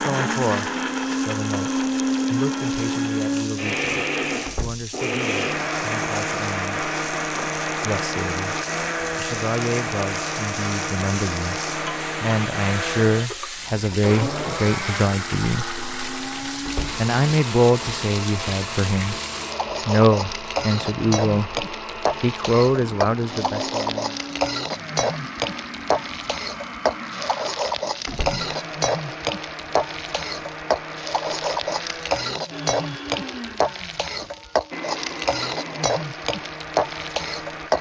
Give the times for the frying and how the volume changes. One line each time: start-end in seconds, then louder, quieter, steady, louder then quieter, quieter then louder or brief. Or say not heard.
0.0-37.7 louder.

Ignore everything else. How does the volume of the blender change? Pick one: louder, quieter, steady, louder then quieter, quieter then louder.
quieter.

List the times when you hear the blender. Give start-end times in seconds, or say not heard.
0.0-37.7.